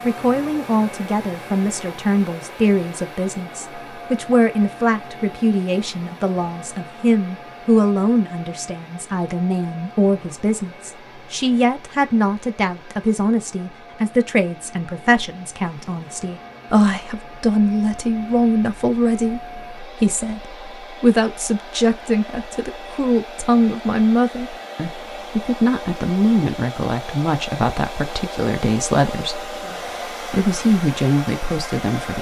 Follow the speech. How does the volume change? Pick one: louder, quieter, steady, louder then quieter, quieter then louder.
steady.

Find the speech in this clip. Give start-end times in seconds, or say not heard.
0.0-32.1.